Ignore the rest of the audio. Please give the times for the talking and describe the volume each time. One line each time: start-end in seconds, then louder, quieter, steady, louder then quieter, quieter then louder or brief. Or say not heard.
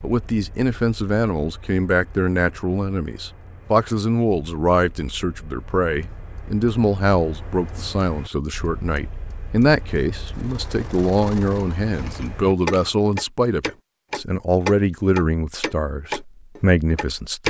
0.0-17.4 steady.